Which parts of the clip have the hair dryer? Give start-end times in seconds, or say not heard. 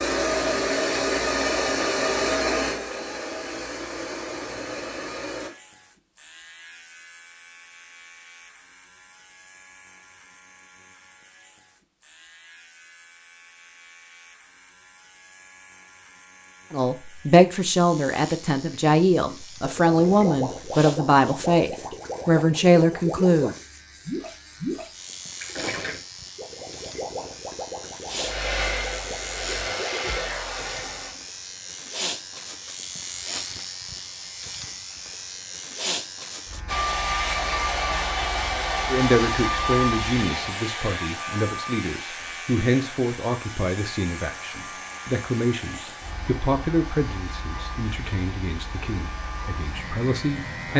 0.0-5.5, 28.1-31.1, 36.6-50.7.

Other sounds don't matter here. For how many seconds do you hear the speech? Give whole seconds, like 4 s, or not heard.
19 s.